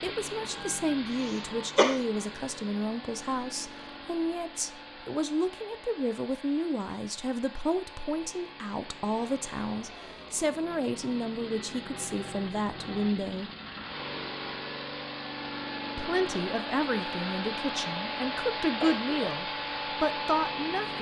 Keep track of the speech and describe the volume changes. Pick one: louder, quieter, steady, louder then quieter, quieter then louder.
steady.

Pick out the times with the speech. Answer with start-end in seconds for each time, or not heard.
0.0-13.5, 15.9-20.9.